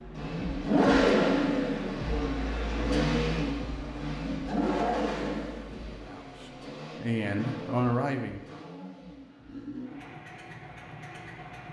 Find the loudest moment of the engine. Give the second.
1 s.